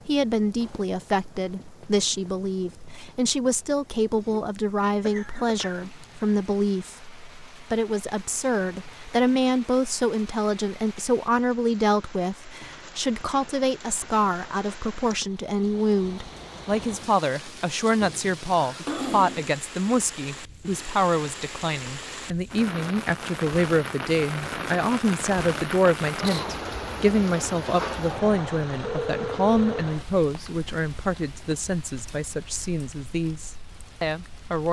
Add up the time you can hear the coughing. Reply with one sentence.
The coughing can be heard for 3 seconds in total.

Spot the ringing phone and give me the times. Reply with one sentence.
The ringing phone can be heard from 28.8 to 29.9 s.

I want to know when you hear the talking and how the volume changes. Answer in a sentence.
You can hear the talking from 0.1 to 34.6 s, at a steady volume.